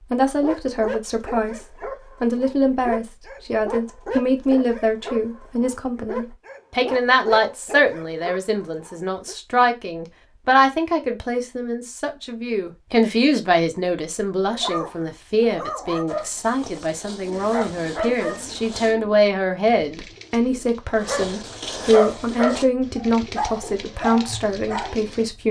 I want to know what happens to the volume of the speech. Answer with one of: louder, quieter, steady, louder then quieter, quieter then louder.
steady.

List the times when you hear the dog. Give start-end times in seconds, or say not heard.
0.4-9.3, 14.5-18.9, 21.0-25.4.